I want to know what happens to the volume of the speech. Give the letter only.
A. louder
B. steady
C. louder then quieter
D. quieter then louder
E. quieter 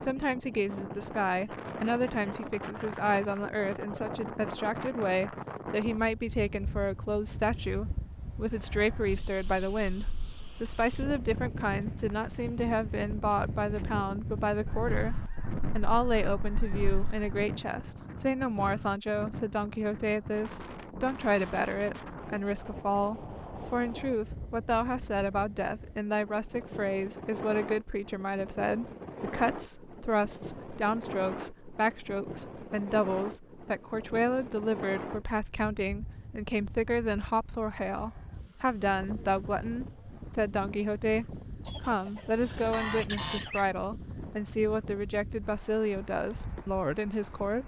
B.